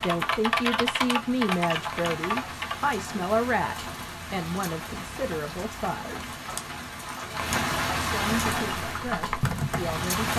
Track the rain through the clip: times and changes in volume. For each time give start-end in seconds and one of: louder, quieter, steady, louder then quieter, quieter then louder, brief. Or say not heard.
0.0-10.3 louder.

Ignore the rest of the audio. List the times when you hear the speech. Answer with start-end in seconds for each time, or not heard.
0.0-6.3, 8.1-10.3.